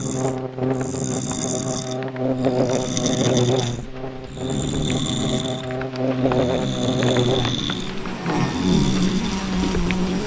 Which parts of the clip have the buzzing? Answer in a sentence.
You can hear the buzzing from 0.0 to 10.2 s.